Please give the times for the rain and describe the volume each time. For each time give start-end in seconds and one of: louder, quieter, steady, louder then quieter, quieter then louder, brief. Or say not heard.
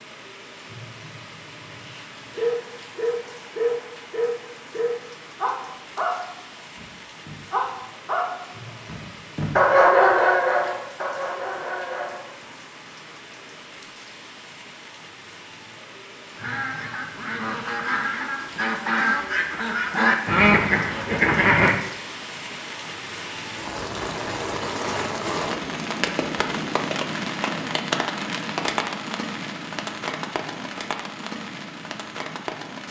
0.0-32.8 louder.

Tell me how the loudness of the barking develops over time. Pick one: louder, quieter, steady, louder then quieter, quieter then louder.
louder then quieter.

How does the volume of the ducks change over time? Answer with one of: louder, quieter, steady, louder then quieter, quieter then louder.
louder.